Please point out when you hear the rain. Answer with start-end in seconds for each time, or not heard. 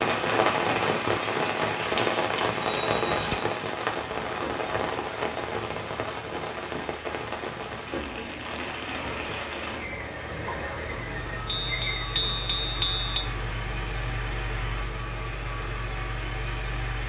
0.0-17.0.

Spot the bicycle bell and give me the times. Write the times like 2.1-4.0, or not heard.
2.6-3.5, 11.4-13.2.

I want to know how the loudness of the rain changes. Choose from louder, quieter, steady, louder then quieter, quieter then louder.
quieter.